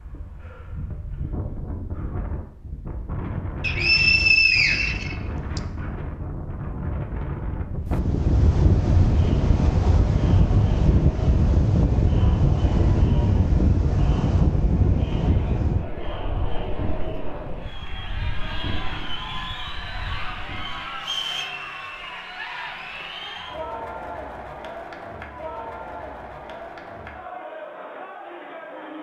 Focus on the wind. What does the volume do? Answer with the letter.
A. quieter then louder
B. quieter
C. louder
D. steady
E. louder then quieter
E.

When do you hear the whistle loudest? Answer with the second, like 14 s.
4 s.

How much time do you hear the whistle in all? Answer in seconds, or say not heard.
3 s.